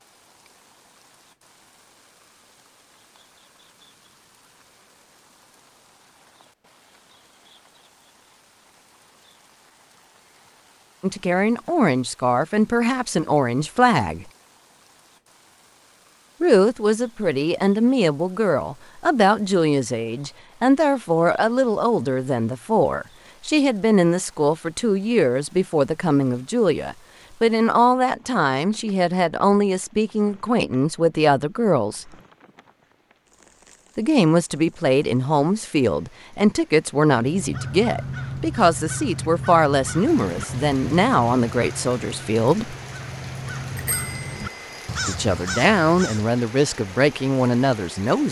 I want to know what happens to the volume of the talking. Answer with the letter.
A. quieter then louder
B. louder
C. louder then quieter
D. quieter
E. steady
E.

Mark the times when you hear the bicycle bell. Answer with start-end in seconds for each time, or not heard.
43.8-44.9.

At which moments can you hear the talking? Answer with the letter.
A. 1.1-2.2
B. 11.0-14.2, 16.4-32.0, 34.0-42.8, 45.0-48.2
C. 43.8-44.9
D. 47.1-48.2
B.